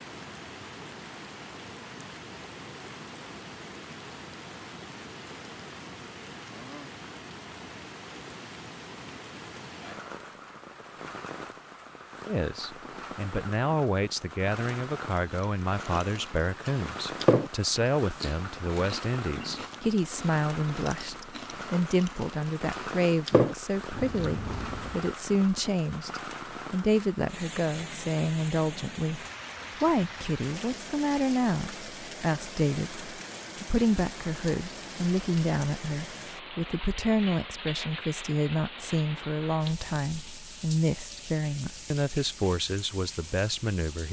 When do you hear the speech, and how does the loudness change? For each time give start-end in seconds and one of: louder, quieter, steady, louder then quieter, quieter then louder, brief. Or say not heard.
12.2-44.0 steady.